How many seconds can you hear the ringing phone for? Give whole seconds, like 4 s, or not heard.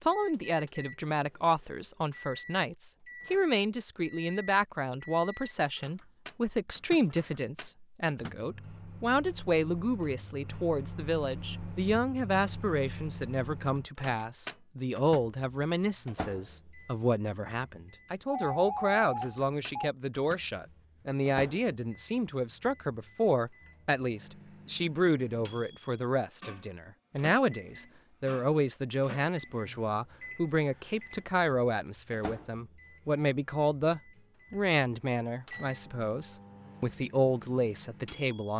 2 s.